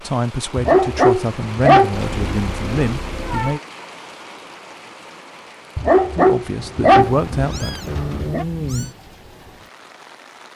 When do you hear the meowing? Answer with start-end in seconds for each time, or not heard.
1.9-3.6, 7.0-8.9.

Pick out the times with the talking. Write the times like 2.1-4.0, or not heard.
0.0-3.6, 6.2-7.8.